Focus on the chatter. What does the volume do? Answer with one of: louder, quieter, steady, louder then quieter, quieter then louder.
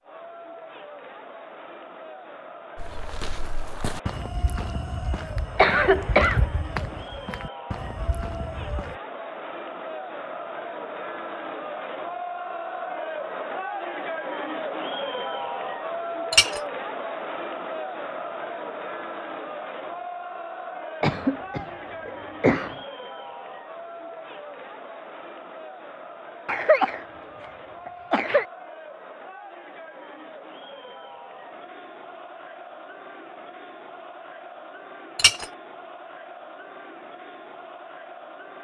louder then quieter.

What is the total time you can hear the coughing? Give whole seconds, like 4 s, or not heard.
5 s.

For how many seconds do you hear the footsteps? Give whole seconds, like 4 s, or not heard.
6 s.